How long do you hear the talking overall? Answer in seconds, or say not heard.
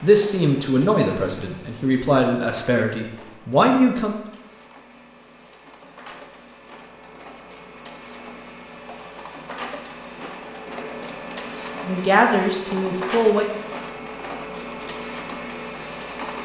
6 s.